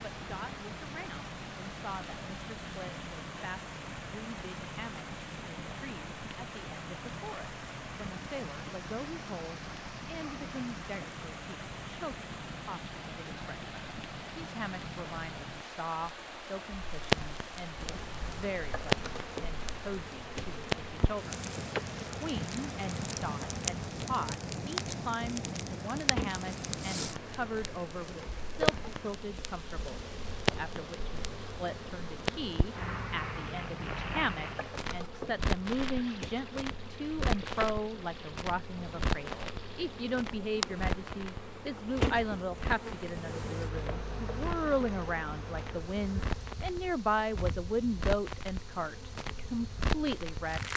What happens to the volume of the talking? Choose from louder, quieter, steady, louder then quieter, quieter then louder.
louder.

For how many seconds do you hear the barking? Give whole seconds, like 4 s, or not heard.
not heard.